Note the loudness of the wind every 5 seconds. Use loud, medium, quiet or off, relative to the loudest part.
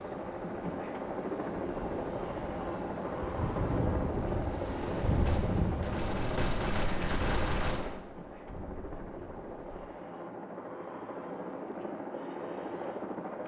loud, loud, off.